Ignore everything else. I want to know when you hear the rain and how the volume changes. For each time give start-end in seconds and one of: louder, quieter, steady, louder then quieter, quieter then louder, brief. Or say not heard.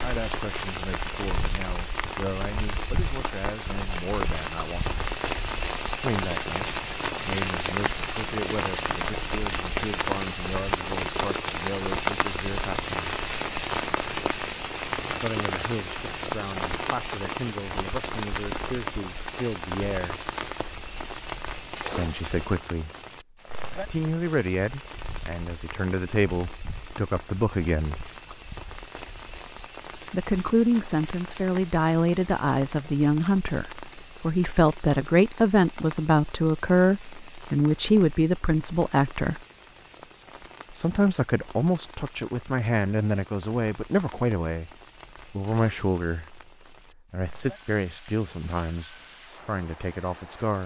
0.0-50.6 quieter.